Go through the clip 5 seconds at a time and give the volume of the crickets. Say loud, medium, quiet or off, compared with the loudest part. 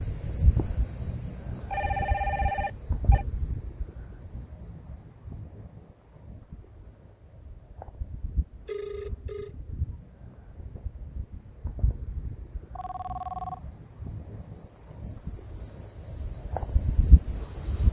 loud, quiet, medium, loud.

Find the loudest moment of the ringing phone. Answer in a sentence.
The volume of the ringing phone peaks at 2 seconds.